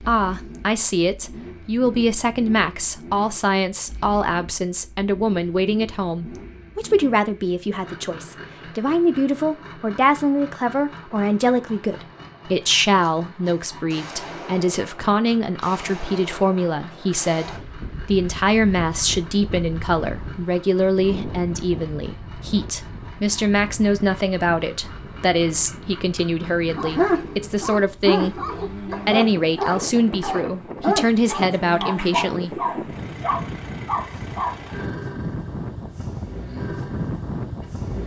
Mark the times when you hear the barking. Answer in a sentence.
The barking can be heard from 26.5 to 34.5 s.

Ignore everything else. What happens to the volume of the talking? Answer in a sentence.
The loudness of the talking stays about the same.